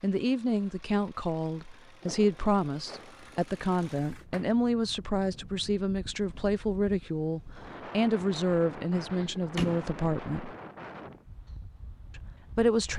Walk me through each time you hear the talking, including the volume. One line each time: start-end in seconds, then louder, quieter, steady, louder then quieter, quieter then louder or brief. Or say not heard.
0.0-10.6 steady
12.2-12.9 brief.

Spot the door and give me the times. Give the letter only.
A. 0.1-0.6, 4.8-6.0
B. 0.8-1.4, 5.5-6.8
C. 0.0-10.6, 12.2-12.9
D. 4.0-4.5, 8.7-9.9
D.